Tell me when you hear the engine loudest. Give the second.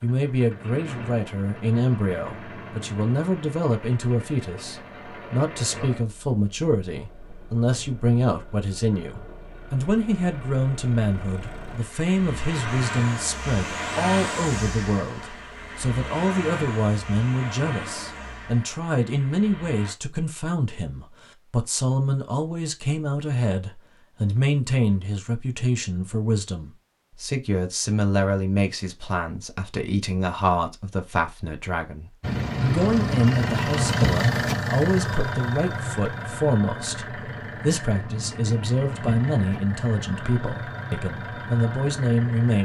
34 s.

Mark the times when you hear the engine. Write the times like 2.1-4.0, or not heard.
0.0-19.9, 32.2-42.5.